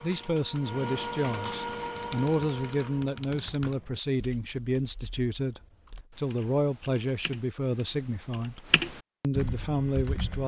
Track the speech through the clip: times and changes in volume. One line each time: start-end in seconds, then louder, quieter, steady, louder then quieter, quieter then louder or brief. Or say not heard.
0.0-10.4 steady.